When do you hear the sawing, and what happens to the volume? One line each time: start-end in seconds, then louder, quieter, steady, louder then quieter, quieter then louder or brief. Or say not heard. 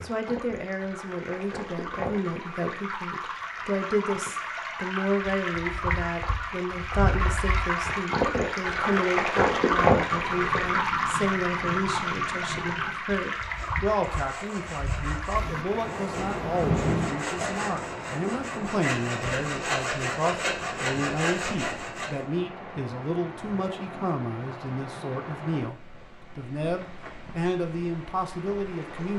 13.4-22.2 louder.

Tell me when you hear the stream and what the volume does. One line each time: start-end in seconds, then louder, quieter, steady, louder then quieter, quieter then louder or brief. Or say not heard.
0.0-29.1 louder then quieter.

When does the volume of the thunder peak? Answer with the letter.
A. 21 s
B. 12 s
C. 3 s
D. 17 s
D.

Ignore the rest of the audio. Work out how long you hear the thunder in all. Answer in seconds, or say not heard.
5 s.